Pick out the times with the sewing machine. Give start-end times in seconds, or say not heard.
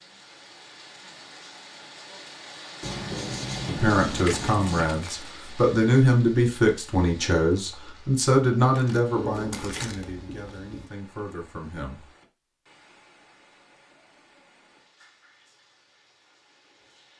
not heard.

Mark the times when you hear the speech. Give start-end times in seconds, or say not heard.
3.6-12.0.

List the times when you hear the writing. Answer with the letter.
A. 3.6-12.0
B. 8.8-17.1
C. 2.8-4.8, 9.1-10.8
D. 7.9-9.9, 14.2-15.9
C.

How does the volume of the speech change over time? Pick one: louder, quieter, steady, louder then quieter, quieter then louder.
louder then quieter.